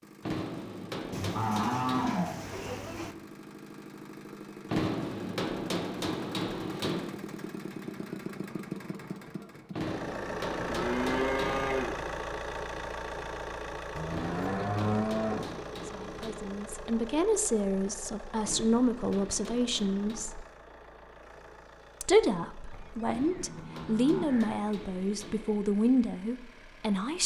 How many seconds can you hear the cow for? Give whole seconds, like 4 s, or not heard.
7 s.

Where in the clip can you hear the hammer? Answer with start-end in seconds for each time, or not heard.
0.2-2.2, 4.7-7.2, 9.7-11.7, 14.1-16.4, 18.4-20.4, 23.1-25.6.